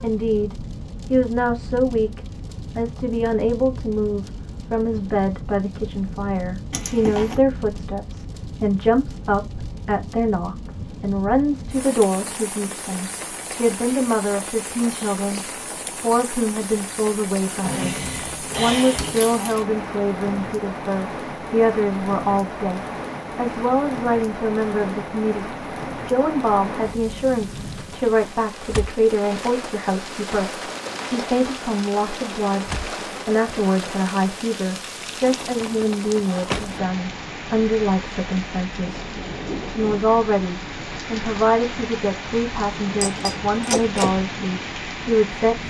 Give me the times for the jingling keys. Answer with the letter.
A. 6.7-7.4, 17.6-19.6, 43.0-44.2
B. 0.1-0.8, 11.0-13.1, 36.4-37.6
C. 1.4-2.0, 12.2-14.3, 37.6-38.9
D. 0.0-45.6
A.